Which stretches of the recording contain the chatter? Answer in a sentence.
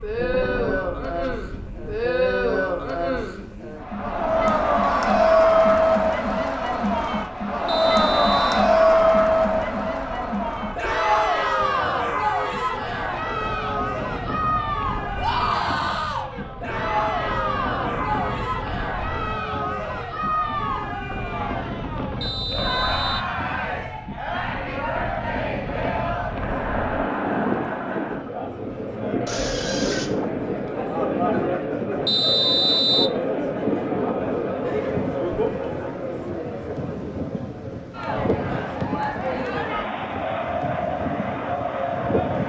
You can hear the chatter from 0.0 to 42.4 s.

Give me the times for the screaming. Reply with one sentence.
The screaming can be heard from 15.2 to 16.3 s and from 29.2 to 30.1 s.